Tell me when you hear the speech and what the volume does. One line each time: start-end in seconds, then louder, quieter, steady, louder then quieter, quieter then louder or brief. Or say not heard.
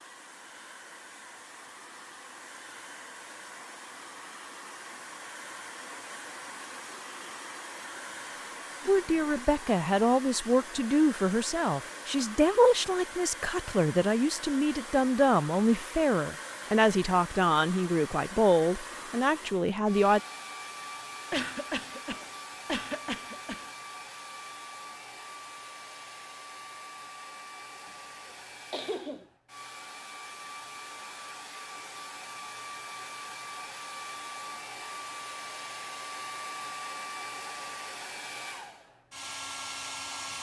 8.8-20.2 steady.